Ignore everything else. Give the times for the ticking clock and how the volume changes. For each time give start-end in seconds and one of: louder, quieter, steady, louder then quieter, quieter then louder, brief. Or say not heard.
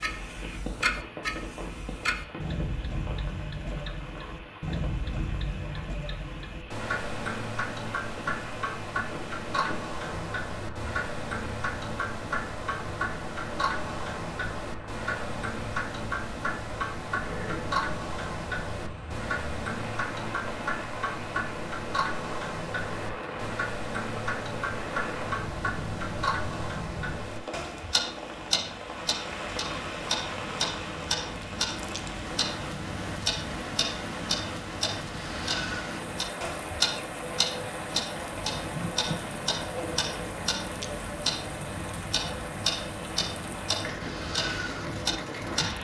0.0-45.8 steady.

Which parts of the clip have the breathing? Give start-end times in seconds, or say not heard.
not heard.